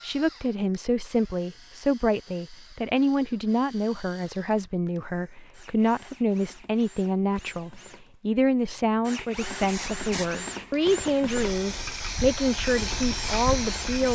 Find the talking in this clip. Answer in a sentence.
The talking can be heard from 0.0 to 14.1 s.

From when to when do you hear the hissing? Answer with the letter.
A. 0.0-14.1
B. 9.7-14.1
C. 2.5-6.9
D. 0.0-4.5
B.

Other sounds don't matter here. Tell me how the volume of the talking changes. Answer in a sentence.
The loudness of the talking stays about the same.